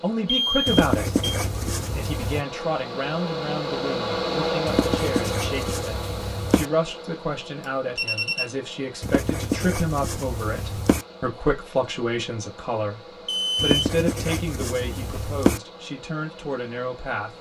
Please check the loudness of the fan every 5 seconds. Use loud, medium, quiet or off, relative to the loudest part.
loud, medium, quiet, quiet.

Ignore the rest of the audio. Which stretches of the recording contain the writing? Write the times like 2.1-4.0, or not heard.
0.7-2.5, 4.7-6.7, 9.0-11.1, 13.6-15.6.